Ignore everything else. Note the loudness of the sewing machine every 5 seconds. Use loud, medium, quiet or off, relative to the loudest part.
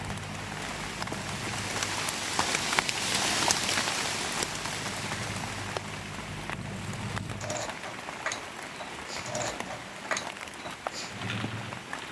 medium, loud, loud.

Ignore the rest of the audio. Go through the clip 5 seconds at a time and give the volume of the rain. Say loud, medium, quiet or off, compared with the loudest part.
loud, medium, medium.